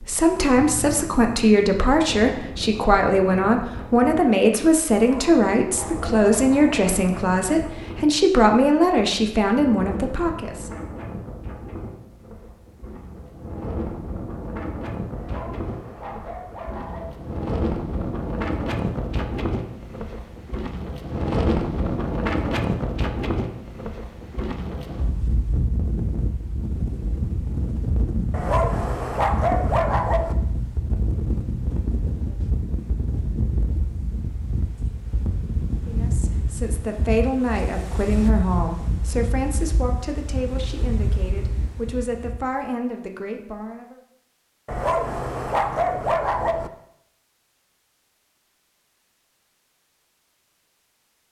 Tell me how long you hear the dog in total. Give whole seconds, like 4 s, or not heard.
8 s.